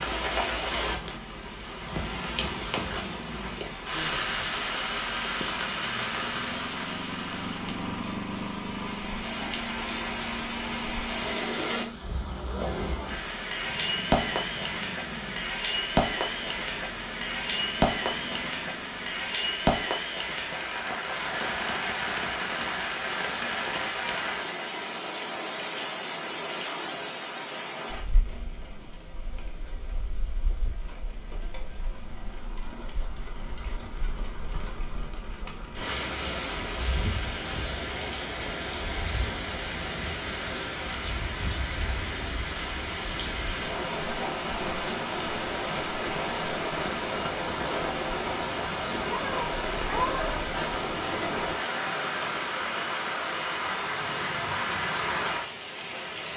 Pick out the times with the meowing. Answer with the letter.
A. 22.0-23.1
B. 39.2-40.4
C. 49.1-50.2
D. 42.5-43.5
C.